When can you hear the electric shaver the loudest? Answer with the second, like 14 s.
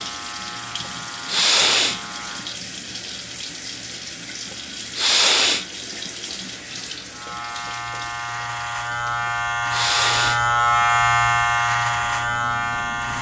11 s.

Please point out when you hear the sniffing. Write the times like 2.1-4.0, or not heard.
0.8-2.0, 4.5-6.1, 9.2-10.8.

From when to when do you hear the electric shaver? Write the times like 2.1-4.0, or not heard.
0.0-2.6, 7.1-13.1.